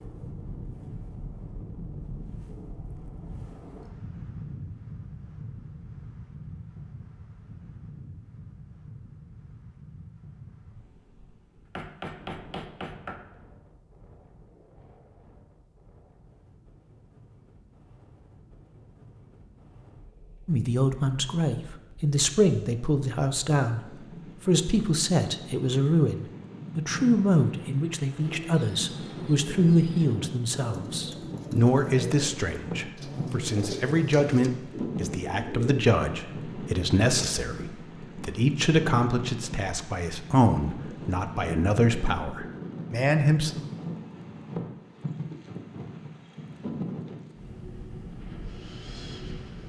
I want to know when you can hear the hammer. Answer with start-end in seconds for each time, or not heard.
11.7-13.2.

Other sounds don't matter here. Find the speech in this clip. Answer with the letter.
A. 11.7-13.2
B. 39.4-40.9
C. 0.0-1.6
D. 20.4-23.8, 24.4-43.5
D.